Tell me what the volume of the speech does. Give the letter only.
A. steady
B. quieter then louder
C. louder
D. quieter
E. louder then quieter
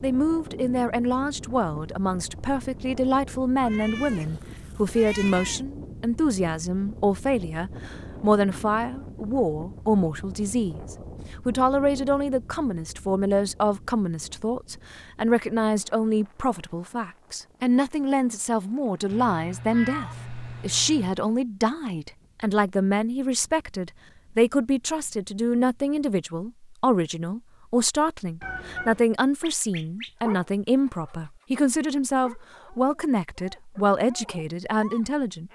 A.